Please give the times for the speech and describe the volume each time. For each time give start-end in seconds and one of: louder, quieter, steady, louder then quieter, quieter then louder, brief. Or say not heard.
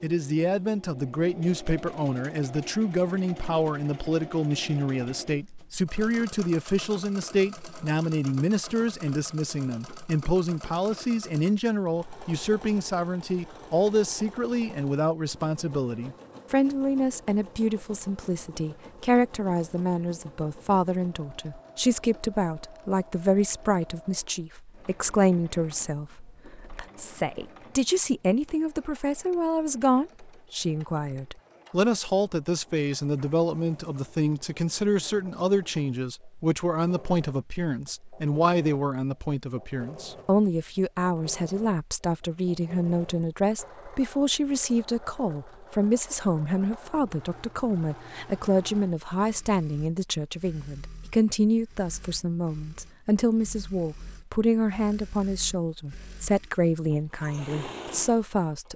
0.0-58.7 steady.